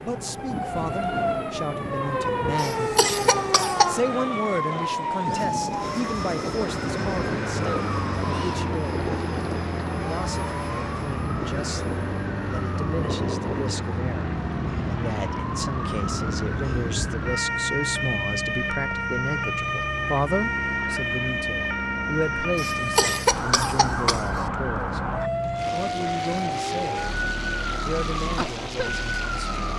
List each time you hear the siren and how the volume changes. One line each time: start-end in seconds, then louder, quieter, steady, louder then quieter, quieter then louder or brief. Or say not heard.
0.1-29.7 steady.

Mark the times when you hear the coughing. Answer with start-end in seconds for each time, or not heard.
2.5-4.0, 22.6-24.4.